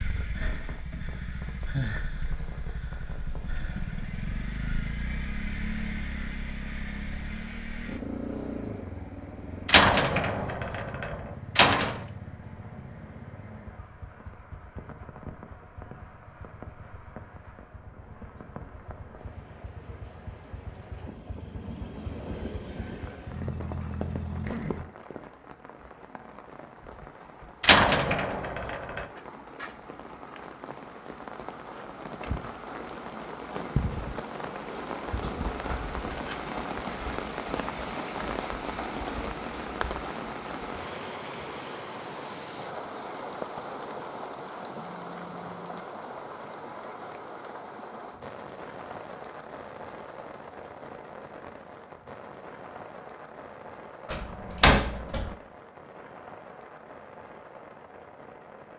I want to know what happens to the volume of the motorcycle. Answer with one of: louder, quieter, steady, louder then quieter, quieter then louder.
quieter then louder.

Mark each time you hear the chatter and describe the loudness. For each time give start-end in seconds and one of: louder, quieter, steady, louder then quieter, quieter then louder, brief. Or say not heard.
not heard.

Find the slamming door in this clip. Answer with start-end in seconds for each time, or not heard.
9.7-12.0, 27.6-29.1, 54.1-55.4.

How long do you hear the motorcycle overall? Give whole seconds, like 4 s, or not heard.
25 s.